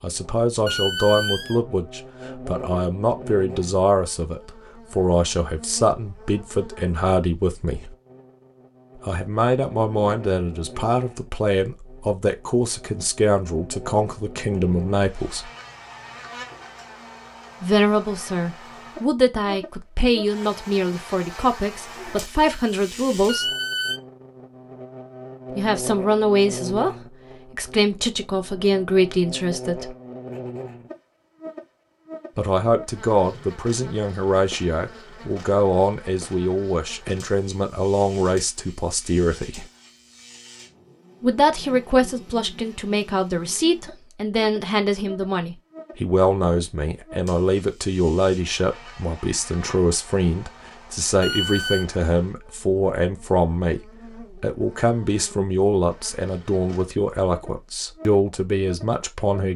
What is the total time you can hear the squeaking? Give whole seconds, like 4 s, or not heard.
2 s.